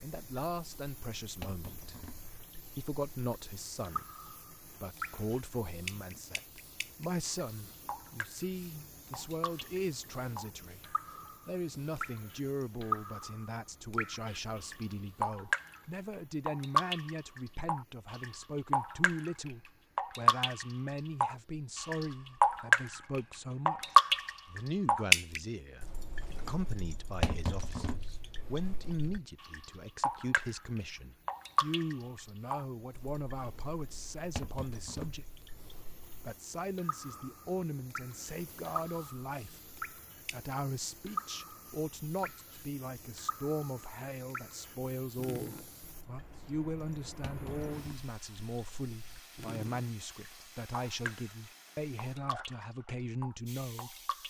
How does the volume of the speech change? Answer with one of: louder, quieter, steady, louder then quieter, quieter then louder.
steady.